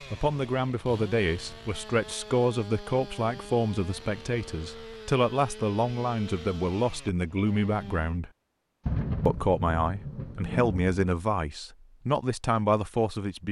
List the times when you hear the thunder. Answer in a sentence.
You can hear the thunder from 8.8 to 10.9 s.